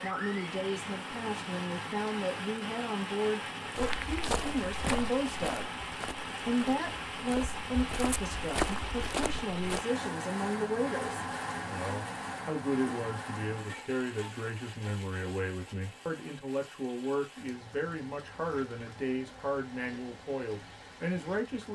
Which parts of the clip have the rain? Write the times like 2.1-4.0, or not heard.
0.0-21.6.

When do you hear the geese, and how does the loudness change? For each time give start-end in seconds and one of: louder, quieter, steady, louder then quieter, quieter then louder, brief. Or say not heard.
not heard.